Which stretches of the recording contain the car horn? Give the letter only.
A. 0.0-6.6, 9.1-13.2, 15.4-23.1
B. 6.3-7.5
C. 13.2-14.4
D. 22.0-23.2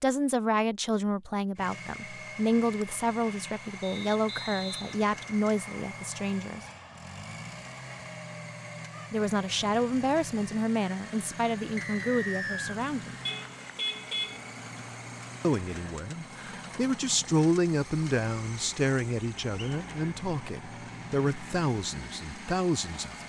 C.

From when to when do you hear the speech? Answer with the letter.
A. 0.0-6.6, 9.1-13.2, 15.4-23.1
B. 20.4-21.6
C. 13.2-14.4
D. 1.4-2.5
A.